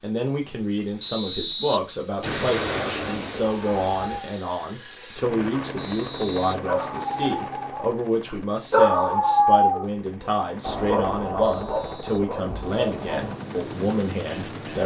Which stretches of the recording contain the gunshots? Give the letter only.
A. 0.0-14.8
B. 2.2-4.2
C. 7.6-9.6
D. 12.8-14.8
B.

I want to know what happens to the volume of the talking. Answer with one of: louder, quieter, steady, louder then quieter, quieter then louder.
steady.